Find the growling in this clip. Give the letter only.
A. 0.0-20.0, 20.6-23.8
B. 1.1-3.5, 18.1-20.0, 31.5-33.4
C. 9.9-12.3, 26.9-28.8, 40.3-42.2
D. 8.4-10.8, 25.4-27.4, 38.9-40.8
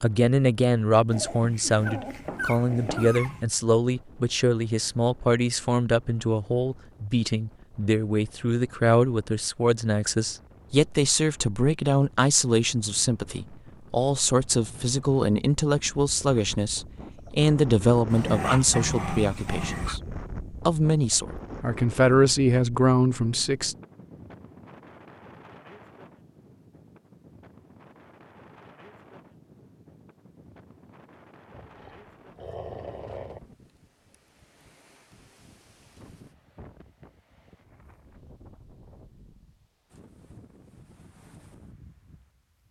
B.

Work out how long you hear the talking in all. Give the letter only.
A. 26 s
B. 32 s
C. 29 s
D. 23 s
D.